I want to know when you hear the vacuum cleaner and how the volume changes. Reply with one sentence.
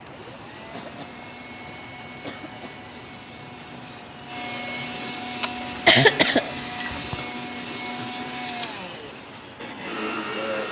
You can hear the vacuum cleaner from 0.0 to 10.6 s, getting louder.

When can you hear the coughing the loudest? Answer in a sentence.
The loudest moment of the coughing is at 6 seconds.